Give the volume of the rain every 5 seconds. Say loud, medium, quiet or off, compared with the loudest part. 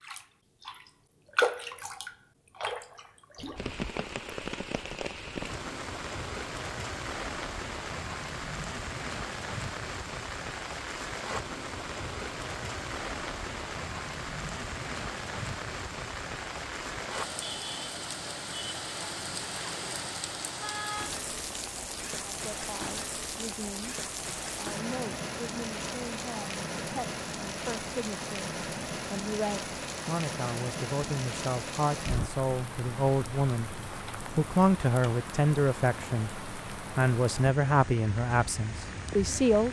loud, loud, loud, loud, loud, loud, loud, medium.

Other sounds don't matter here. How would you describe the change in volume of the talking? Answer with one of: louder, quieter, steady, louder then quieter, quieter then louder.
louder.